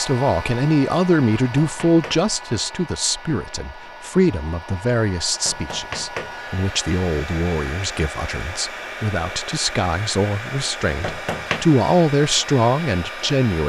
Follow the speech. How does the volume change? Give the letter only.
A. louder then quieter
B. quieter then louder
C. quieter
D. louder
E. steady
B.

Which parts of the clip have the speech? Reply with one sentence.
The speech can be heard from 0.0 to 13.6 s.